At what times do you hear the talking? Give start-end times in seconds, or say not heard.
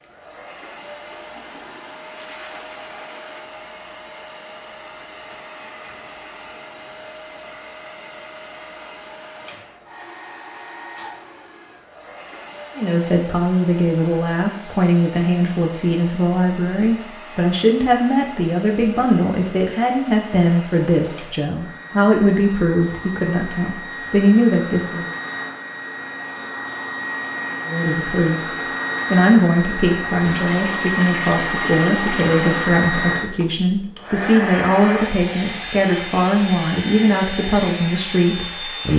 12.8-25.1, 27.6-38.9.